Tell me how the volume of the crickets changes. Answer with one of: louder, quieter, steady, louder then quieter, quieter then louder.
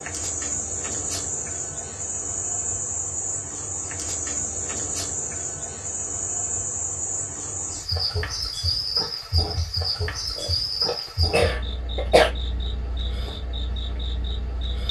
quieter.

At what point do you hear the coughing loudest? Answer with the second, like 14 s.
12 s.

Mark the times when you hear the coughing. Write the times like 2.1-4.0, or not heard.
10.3-12.3.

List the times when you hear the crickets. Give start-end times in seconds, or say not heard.
0.0-14.8.